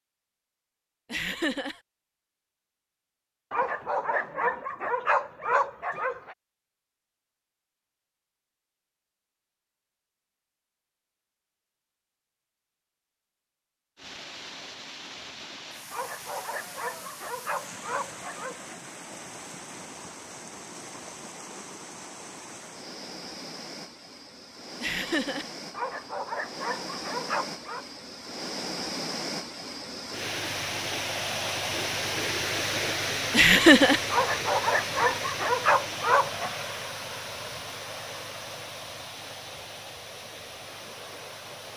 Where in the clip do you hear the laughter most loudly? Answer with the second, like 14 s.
34 s.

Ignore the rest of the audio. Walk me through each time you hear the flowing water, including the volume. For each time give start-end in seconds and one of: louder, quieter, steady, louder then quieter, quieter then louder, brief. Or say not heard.
13.9-41.7 louder then quieter.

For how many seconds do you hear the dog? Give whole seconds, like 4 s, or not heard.
10 s.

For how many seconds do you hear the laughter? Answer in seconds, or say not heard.
2 s.